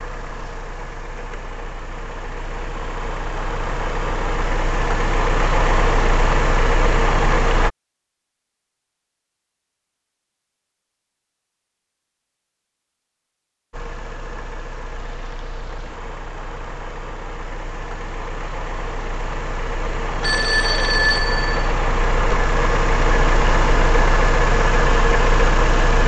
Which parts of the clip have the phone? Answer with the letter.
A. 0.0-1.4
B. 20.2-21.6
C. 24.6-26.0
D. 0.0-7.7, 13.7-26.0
B.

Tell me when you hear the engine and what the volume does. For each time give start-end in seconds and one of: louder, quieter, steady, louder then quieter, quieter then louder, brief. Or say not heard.
0.0-7.7 louder
13.7-26.0 louder.